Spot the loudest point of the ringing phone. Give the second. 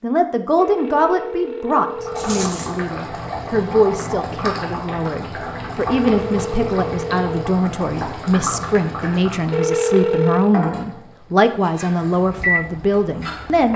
10 s.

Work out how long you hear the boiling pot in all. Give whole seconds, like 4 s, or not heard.
12 s.